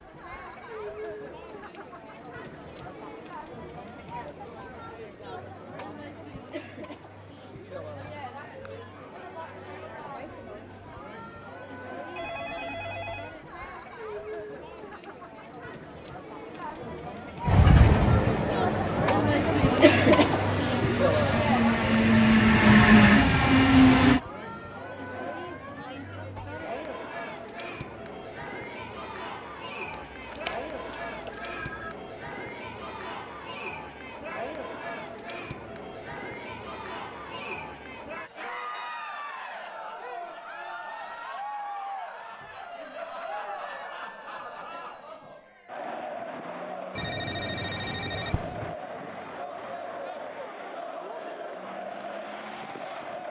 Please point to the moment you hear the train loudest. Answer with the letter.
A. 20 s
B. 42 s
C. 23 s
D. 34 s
C.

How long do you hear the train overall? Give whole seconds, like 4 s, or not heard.
7 s.